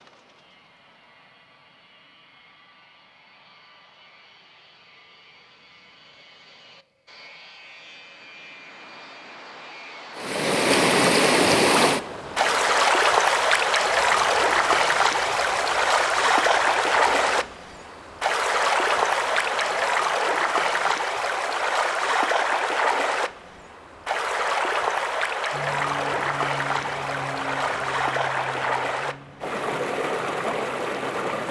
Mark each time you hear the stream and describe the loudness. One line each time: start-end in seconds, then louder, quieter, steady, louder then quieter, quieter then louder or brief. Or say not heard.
10.2-31.4 quieter.